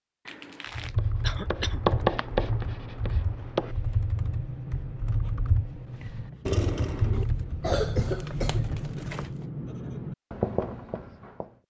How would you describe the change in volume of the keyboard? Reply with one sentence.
The volume of the keyboard stays about the same.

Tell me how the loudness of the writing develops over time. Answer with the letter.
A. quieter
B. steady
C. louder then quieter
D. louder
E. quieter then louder
E.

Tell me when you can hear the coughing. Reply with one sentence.
The coughing can be heard from 1.2 to 1.9 s and from 6.5 to 8.6 s.